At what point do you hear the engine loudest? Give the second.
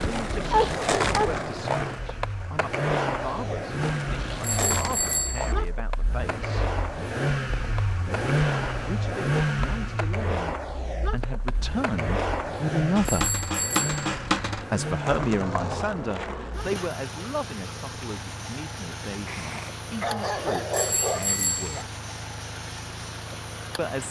9 s.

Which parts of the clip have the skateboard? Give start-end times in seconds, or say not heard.
0.0-16.6.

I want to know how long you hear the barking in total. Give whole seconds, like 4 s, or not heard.
4 s.